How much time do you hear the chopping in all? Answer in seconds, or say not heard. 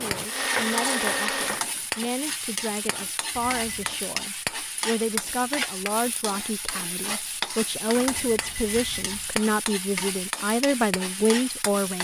2 s.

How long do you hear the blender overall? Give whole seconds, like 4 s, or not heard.
2 s.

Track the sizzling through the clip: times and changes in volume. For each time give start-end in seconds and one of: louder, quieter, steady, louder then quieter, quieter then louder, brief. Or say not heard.
0.0-11.9 steady.